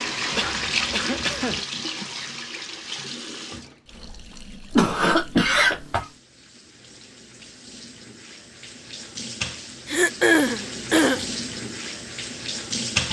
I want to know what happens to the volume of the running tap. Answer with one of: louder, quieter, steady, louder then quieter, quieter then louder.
quieter then louder.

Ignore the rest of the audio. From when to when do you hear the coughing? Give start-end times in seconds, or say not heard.
0.3-1.6, 4.7-6.0, 9.8-11.3.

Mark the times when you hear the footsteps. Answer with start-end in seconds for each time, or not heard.
not heard.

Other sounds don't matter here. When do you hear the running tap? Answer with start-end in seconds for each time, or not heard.
0.0-13.0.